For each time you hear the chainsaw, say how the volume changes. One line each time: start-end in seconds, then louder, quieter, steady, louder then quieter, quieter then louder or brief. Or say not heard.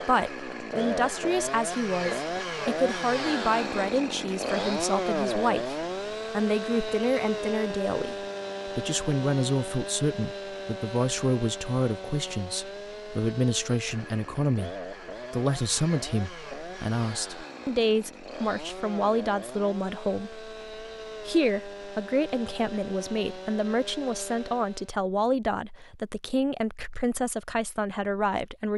0.0-24.9 quieter.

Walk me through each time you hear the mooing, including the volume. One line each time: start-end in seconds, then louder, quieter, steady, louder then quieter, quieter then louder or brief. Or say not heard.
not heard.